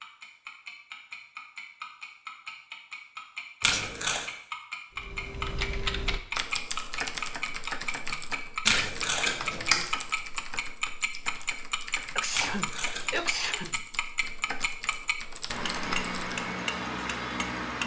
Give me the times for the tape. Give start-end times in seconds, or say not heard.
3.6-4.2, 8.7-9.8, 12.3-13.2.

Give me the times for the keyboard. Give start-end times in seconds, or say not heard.
5.0-16.4.